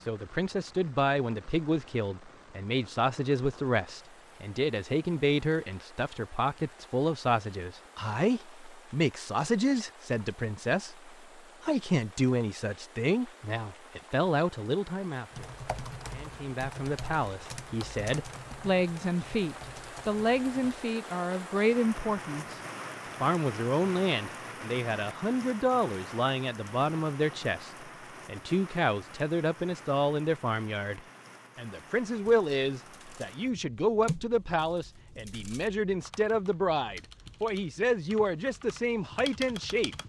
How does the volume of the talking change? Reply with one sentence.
The loudness of the talking stays about the same.